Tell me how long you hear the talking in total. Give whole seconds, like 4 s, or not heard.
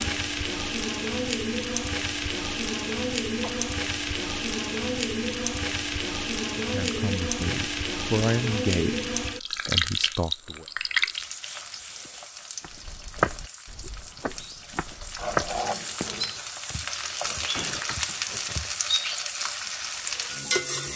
4 s.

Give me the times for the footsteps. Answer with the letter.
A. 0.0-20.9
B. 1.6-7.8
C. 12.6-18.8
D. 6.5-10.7
C.